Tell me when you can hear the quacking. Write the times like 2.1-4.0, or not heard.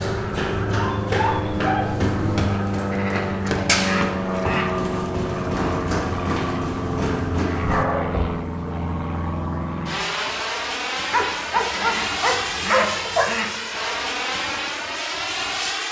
2.7-4.7, 11.6-13.5.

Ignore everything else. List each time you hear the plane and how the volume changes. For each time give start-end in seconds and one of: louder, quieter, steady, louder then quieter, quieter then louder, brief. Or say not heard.
0.0-15.8 steady.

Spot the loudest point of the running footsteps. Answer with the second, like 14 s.
4 s.